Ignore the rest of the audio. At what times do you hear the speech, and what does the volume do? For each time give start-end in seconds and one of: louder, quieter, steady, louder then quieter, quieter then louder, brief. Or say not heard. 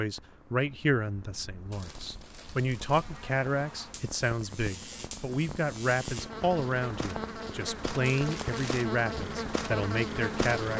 0.0-10.7 steady.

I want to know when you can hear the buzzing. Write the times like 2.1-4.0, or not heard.
2.9-10.7.